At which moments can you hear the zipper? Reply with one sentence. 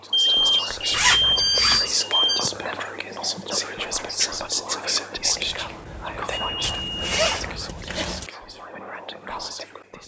You can hear the zipper from 0.9 to 1.9 s and from 6.6 to 8.3 s.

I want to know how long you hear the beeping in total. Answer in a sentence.
The beeping can be heard for 5 seconds in total.